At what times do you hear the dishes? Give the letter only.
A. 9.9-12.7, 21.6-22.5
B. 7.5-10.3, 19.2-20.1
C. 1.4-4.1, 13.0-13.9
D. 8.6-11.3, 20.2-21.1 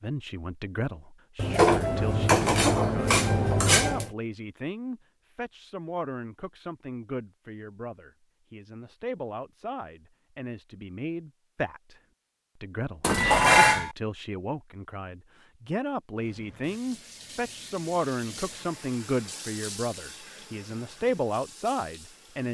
C.